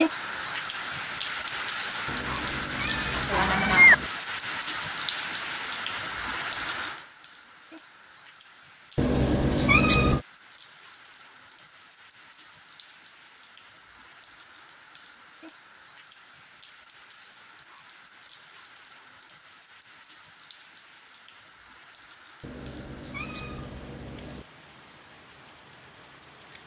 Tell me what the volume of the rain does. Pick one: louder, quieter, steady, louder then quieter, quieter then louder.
quieter.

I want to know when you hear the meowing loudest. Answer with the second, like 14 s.
10 s.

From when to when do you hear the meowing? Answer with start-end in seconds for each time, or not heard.
2.0-4.1, 8.9-10.2, 22.4-24.4.